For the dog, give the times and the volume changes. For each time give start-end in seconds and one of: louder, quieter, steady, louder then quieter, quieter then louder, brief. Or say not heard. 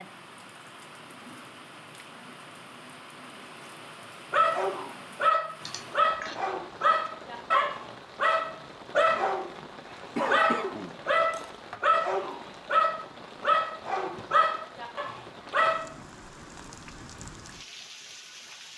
4.3-15.9 steady.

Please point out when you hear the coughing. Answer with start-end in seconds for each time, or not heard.
5.7-6.3, 10.2-11.5.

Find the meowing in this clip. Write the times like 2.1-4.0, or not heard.
not heard.